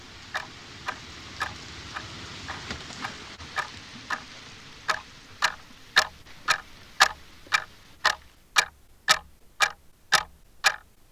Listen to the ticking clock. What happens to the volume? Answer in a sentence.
The volume of the ticking clock goes up.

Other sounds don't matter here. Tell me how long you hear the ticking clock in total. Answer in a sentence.
The ticking clock can be heard for 10 seconds in total.